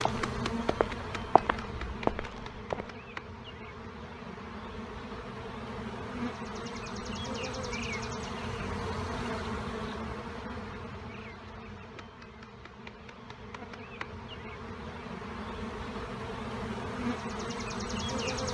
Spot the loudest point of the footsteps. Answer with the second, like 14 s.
2 s.